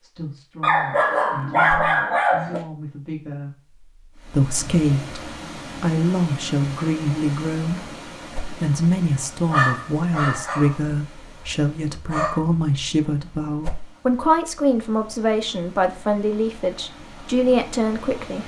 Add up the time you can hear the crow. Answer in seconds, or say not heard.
not heard.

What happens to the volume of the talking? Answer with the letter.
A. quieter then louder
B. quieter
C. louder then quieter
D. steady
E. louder
E.